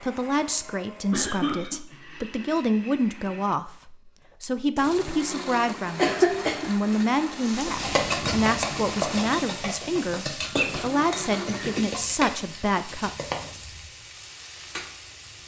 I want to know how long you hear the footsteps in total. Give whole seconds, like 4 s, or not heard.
not heard.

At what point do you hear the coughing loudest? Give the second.
6 s.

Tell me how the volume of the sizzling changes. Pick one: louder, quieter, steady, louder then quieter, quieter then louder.
quieter.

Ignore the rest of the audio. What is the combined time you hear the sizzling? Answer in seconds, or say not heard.
8 s.